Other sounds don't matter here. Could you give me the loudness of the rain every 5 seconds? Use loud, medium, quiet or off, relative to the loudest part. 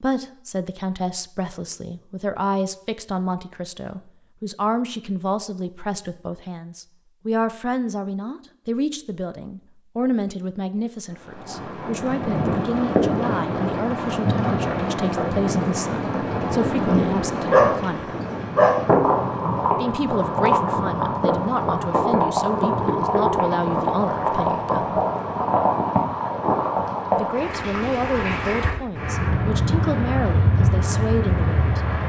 off, off, loud, loud, loud, loud, loud.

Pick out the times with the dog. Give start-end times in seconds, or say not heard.
17.5-19.1.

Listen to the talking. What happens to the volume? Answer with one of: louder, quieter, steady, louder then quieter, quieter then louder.
steady.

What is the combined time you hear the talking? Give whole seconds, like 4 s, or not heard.
28 s.